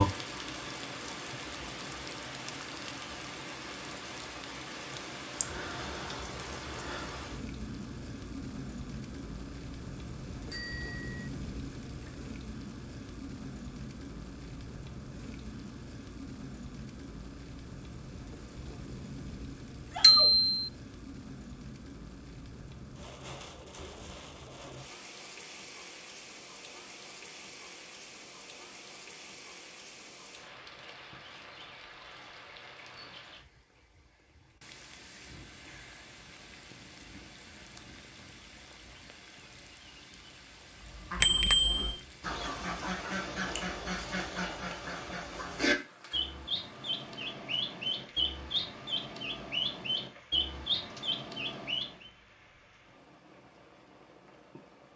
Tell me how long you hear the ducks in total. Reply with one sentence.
The ducks can be heard for 11 seconds in total.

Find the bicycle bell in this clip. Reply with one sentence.
The bicycle bell can be heard from 10.5 to 11.3 s, from 20.0 to 20.6 s and from 41.2 to 42.0 s.